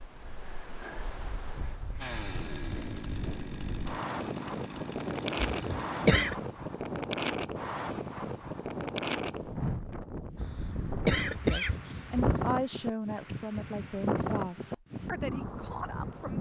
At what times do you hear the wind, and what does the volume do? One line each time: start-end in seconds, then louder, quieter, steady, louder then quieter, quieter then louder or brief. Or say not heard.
0.0-16.3 louder.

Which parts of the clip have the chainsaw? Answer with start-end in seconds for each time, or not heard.
2.0-6.2.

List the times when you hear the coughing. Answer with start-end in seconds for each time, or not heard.
5.4-6.3, 10.3-12.5.